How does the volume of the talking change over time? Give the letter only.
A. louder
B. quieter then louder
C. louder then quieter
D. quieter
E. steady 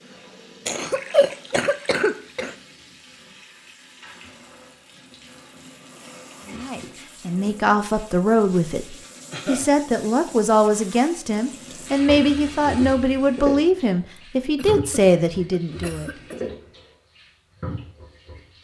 E.